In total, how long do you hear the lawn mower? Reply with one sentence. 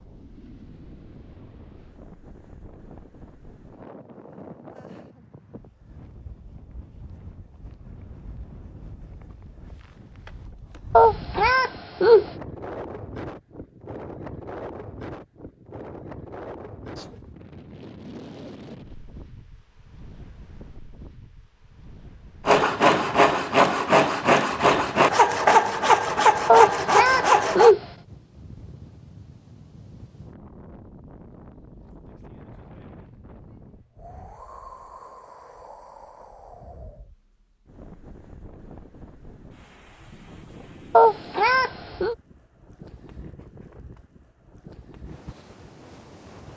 You can't hear the lawn mower here.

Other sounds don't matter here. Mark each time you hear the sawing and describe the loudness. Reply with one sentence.
The sawing can be heard from 22.4 to 27.8 s, at a steady volume.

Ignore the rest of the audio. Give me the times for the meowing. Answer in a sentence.
The meowing can be heard from 10.9 to 12.2 s, from 26.4 to 27.8 s and from 40.9 to 42.1 s.